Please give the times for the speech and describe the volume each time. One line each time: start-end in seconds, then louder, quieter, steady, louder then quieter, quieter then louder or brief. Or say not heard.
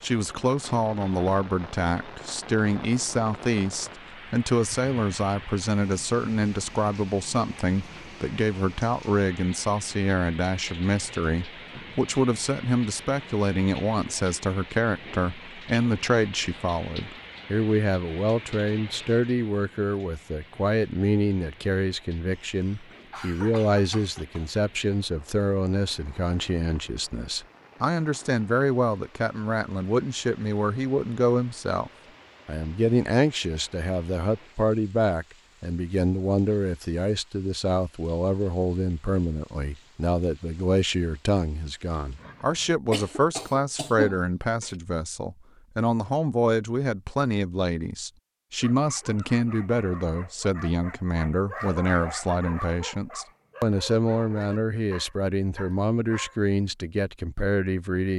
0.0-58.1 steady.